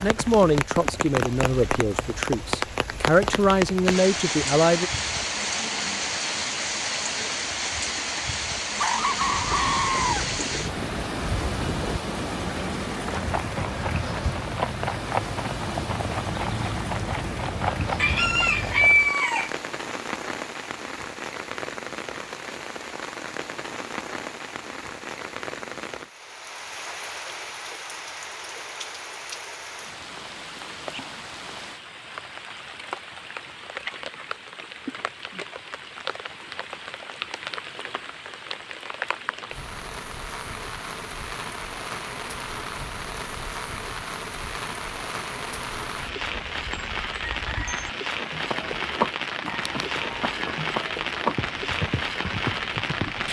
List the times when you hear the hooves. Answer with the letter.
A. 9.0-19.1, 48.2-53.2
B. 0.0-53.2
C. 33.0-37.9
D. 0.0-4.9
A.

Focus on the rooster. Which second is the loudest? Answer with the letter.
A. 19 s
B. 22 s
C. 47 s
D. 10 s
A.